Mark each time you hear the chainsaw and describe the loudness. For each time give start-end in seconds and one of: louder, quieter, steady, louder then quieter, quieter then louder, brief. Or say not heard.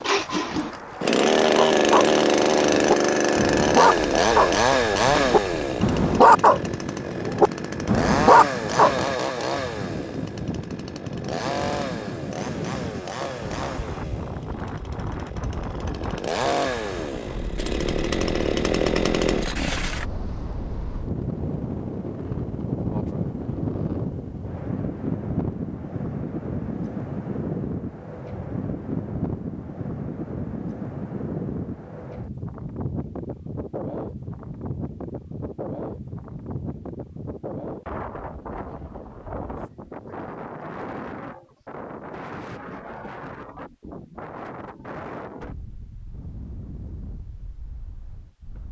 0.0-20.1 quieter then louder.